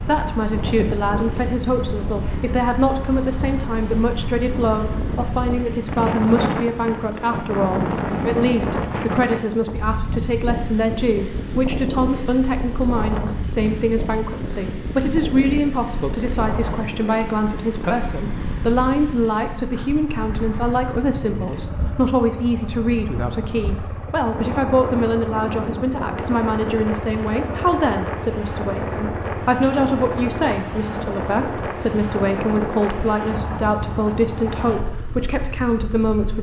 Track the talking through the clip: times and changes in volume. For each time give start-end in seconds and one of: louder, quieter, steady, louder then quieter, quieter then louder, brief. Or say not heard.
0.0-36.3 steady.